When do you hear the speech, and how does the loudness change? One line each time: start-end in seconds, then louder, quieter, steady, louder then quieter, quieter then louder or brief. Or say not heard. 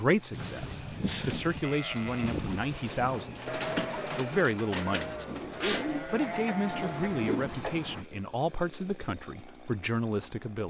0.0-10.6 steady.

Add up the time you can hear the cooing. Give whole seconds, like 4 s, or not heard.
8 s.